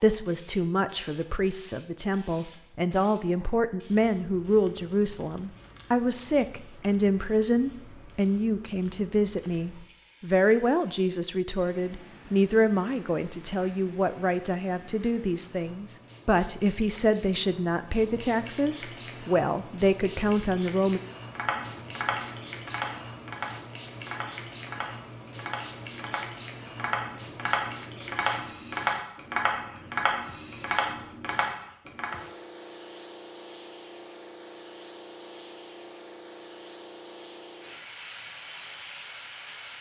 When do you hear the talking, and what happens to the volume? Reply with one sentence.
You can hear the talking from 0.0 to 21.0 s, at a steady volume.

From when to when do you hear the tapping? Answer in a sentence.
The tapping can be heard from 21.4 to 32.1 s.